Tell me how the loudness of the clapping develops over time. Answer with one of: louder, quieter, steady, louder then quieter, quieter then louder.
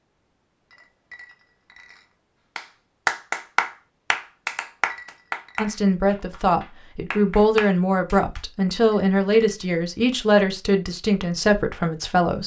quieter then louder.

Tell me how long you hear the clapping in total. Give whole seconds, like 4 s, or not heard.
6 s.